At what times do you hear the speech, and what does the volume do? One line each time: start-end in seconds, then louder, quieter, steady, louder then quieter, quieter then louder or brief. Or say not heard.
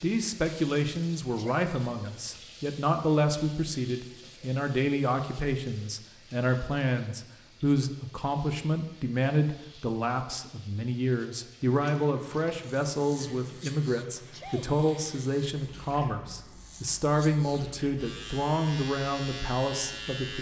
0.0-20.3 steady.